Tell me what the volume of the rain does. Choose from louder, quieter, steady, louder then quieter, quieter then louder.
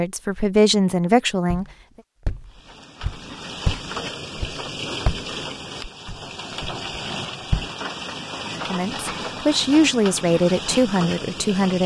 steady.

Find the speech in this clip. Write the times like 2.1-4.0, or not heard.
0.0-1.6, 8.6-11.8.